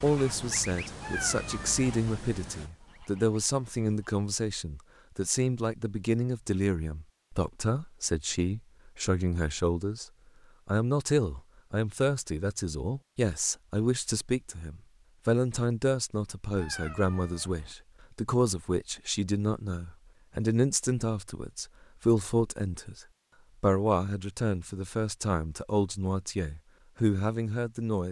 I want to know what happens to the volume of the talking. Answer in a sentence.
The loudness of the talking stays about the same.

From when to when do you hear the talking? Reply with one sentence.
The talking can be heard from 0.0 to 10.1 s and from 10.7 to 28.0 s.